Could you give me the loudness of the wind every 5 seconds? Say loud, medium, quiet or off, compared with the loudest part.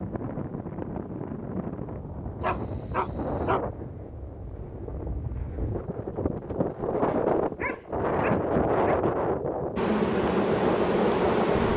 medium, loud, loud.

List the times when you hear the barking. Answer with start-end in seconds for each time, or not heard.
2.4-3.6, 7.0-9.0.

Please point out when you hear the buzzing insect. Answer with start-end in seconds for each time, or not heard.
9.8-11.7.